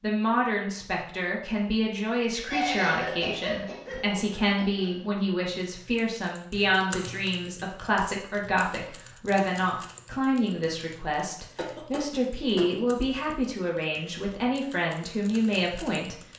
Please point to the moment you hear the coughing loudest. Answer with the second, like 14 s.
3 s.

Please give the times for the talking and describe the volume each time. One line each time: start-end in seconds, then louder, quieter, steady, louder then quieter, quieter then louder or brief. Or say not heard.
0.0-16.1 steady.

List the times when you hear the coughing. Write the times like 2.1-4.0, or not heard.
2.5-5.1, 11.6-13.1.